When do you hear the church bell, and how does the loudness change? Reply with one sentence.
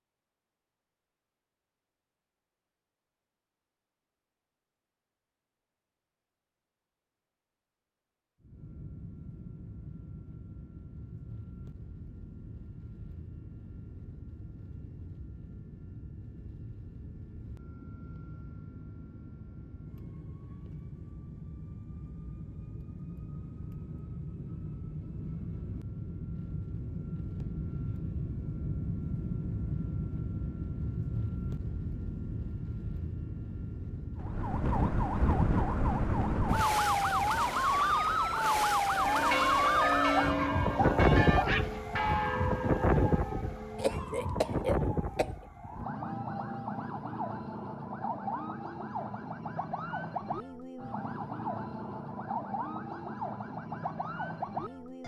You can hear the church bell from 38.9 to 44.0 s, getting quieter.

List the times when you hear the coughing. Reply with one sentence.
You can hear the coughing from 43.8 to 45.5 s.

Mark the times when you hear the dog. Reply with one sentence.
The dog can be heard from 40.1 to 41.7 s.